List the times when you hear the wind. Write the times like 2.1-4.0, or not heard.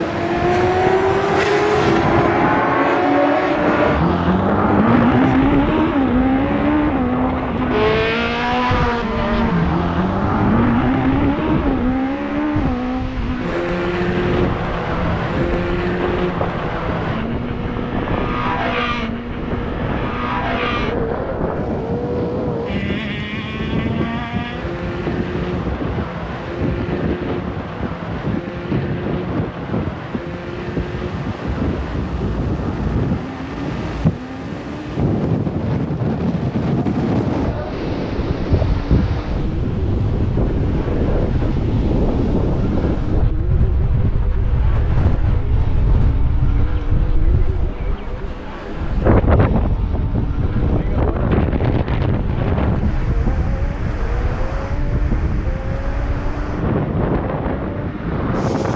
0.0-58.7.